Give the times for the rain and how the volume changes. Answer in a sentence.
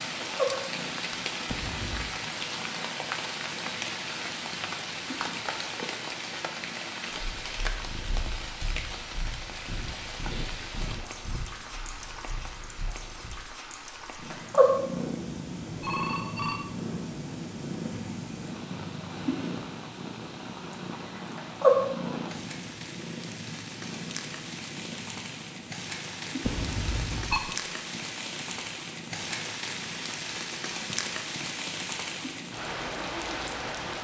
You can hear the rain from 0.0 to 33.9 s, getting quieter then louder.